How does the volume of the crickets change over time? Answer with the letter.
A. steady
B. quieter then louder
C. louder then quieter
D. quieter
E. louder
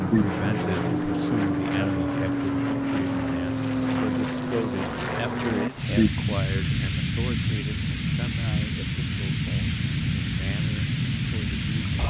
A.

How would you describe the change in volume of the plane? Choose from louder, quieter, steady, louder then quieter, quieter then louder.
steady.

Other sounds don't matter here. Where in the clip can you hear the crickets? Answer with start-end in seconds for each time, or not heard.
0.0-8.8.